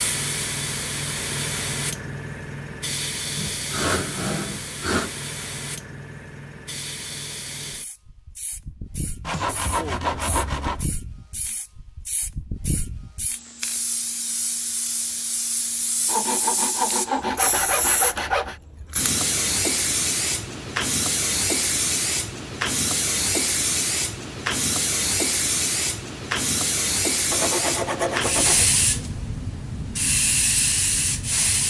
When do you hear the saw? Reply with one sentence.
You can hear the saw from 3.4 to 5.1 s, from 9.2 to 10.8 s, from 16.1 to 18.6 s and from 27.3 to 28.9 s.